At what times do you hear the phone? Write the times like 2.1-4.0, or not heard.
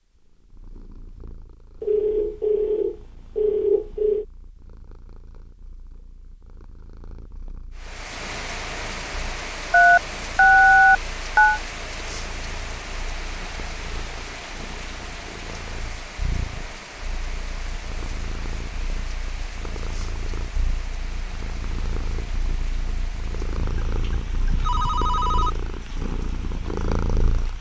1.8-4.2, 9.7-11.6, 23.6-25.5.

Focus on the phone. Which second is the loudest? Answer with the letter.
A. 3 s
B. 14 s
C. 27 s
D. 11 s
D.